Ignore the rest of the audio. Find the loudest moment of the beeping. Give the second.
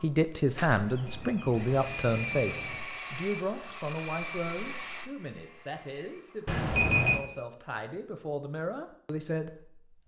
7 s.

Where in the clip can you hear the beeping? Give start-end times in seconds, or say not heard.
0.8-2.8, 6.5-7.2.